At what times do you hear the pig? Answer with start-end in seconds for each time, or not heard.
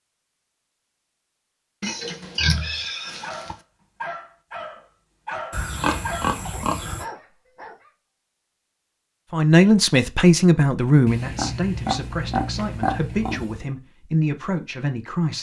1.8-3.5, 5.5-7.0, 11.1-13.7.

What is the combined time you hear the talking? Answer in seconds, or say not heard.
6 s.